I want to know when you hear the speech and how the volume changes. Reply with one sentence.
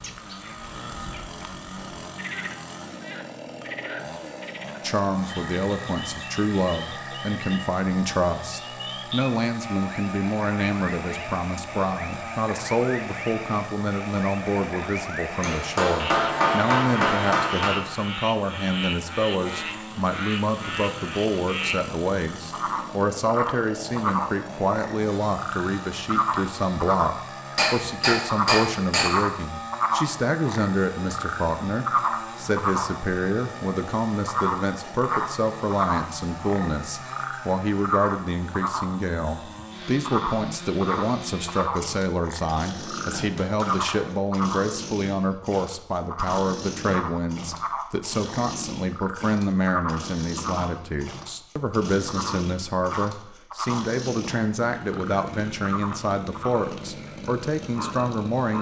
You can hear the speech from 4.8 to 58.5 s, at a steady volume.